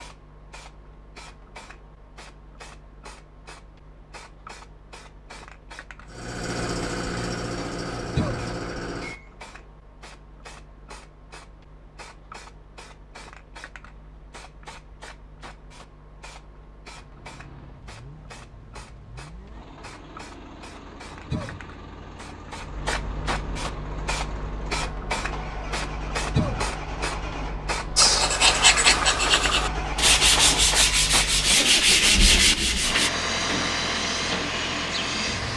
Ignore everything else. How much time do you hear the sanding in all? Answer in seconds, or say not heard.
5 s.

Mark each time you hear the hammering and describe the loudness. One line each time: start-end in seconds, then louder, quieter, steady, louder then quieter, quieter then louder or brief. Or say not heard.
not heard.